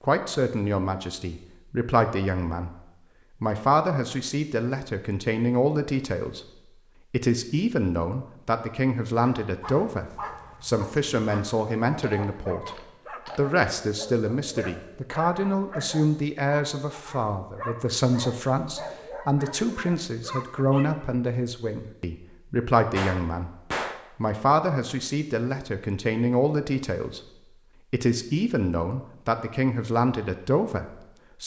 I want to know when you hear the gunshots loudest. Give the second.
24 s.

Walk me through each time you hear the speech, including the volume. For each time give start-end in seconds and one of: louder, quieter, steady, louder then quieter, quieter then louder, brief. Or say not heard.
0.0-2.7 brief
3.4-31.4 steady.